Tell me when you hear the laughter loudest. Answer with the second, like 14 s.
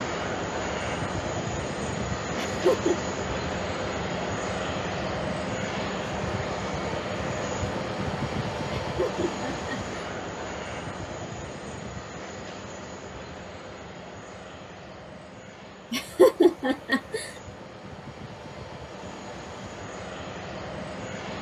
16 s.